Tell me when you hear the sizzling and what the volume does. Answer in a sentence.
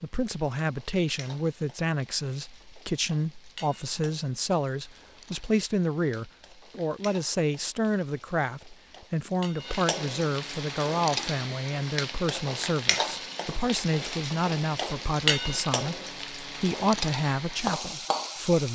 The sizzling can be heard from 0.0 to 18.7 s, getting louder.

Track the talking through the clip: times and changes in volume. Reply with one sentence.
You can hear the talking from 0.0 to 18.7 s, at a steady volume.